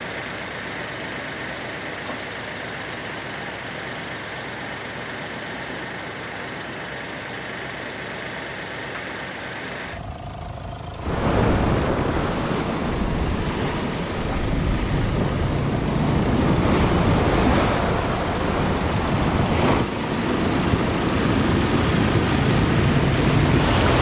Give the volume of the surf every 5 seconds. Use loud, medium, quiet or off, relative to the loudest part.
off, off, loud, loud, loud.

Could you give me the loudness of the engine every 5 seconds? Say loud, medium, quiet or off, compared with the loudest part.
medium, medium, medium, loud, loud.